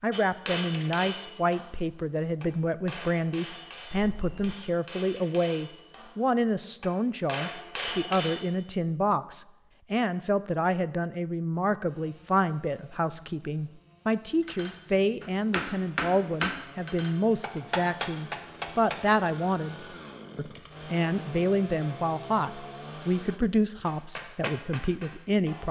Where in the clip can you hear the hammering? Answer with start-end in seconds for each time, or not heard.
0.1-8.4, 14.4-19.0, 23.8-25.6.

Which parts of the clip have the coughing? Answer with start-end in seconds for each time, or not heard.
not heard.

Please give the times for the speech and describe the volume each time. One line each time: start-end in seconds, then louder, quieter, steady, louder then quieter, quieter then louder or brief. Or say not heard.
0.0-25.6 steady.